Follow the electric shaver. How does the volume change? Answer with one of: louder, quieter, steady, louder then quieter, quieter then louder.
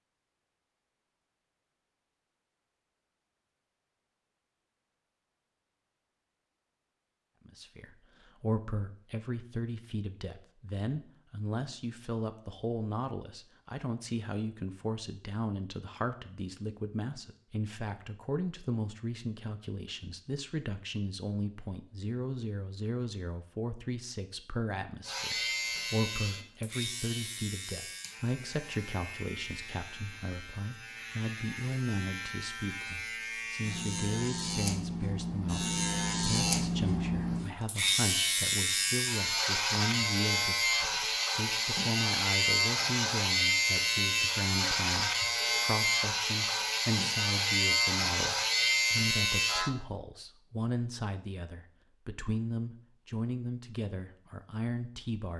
louder.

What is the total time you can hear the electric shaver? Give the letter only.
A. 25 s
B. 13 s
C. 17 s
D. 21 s
A.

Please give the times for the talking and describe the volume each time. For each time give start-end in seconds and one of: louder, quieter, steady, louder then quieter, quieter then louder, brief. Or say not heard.
7.5-55.3 steady.